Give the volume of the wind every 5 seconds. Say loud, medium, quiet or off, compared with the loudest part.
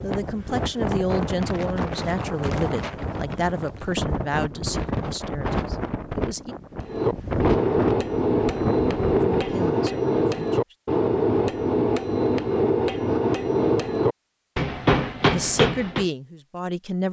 loud, loud, off, off.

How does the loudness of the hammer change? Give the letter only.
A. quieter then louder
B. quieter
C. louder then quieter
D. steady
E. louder
D.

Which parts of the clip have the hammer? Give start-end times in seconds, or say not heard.
6.8-16.1.